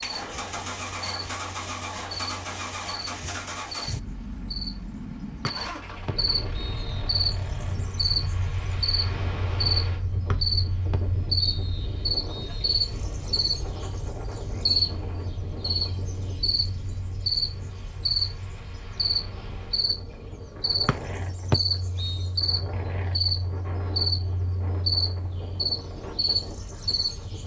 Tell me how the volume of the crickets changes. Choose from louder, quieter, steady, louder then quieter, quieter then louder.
louder.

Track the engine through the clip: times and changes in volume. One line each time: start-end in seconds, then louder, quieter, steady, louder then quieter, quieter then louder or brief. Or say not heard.
0.0-7.8 quieter.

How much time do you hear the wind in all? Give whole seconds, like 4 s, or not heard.
21 s.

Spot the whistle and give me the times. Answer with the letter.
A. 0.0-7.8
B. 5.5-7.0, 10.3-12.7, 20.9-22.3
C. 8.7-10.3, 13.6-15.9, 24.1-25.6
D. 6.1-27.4
B.